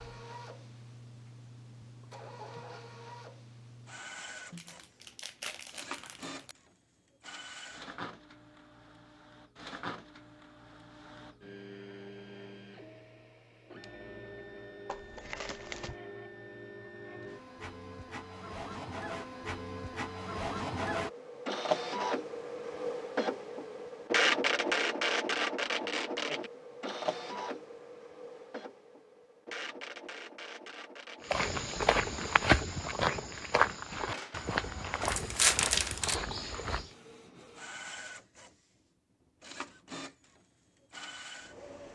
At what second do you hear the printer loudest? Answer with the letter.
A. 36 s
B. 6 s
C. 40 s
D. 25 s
D.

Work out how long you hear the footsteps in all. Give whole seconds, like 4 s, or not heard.
6 s.